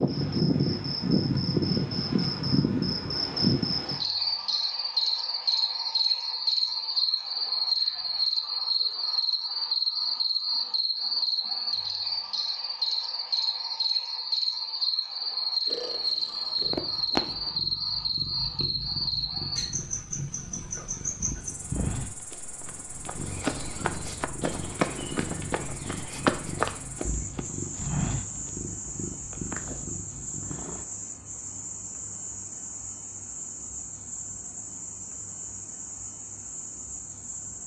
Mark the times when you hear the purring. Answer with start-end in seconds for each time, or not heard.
15.7-30.9.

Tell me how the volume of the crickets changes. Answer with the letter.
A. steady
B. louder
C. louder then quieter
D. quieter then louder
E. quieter
E.